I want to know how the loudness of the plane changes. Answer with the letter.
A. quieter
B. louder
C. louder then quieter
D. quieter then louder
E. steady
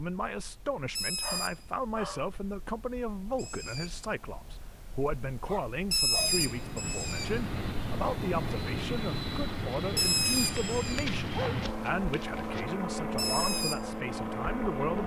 E.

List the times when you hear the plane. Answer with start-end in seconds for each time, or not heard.
6.1-15.0.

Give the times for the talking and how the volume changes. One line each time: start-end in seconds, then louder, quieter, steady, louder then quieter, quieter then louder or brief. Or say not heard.
0.0-15.0 steady.